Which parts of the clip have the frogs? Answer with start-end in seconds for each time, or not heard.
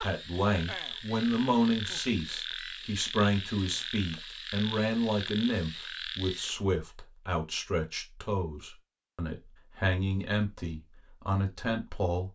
0.0-6.5.